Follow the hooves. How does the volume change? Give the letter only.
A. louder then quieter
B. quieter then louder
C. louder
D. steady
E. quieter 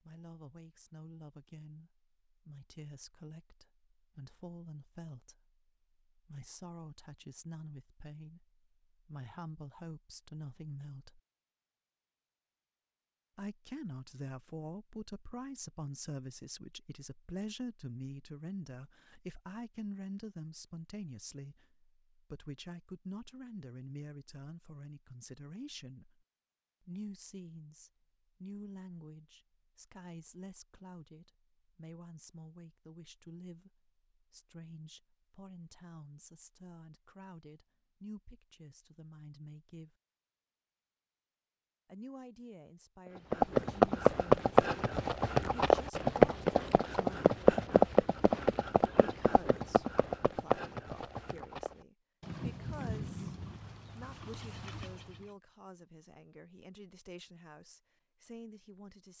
E.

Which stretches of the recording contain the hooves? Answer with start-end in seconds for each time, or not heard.
43.3-55.3.